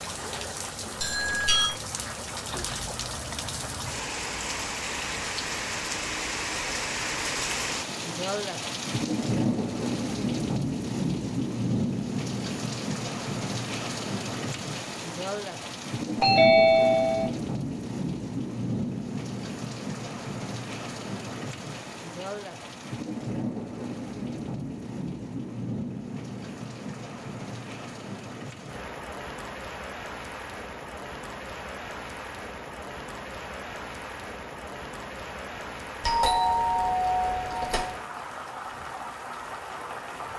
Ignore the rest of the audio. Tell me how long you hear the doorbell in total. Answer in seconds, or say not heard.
4 s.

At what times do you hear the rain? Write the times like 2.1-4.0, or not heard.
0.0-40.3.